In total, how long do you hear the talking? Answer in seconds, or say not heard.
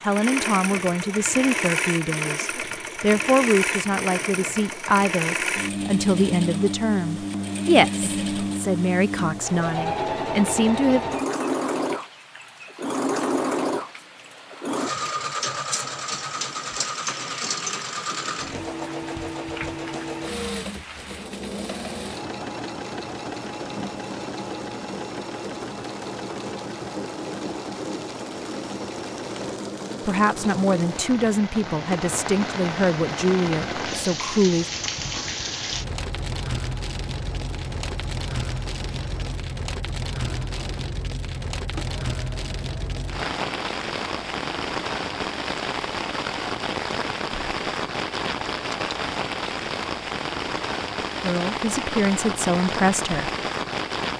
18 s.